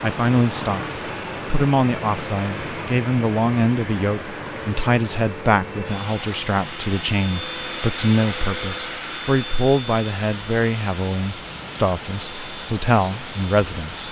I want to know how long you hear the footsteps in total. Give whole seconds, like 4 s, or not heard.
not heard.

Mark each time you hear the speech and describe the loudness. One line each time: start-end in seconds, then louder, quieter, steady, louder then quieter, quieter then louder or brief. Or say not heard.
0.0-14.0 steady.